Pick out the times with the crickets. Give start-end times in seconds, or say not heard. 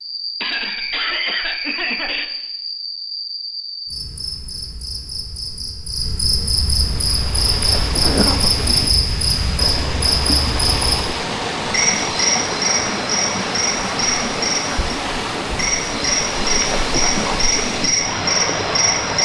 0.0-19.1.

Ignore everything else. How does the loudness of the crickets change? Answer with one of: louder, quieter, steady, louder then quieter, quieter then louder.
louder.